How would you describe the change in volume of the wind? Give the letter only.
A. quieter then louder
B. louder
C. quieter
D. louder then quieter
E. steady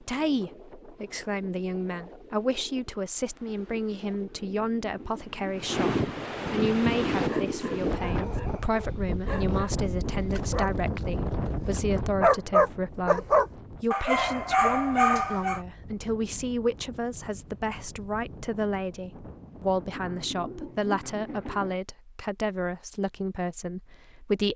D.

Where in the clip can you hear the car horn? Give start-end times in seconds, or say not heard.
not heard.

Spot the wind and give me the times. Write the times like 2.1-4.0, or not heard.
0.0-20.4.